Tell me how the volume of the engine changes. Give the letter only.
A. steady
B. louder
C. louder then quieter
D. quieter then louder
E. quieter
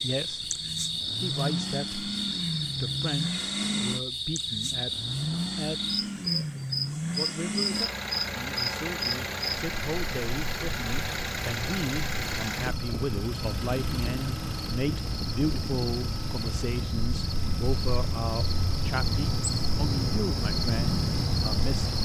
E.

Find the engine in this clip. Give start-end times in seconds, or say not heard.
0.0-21.9.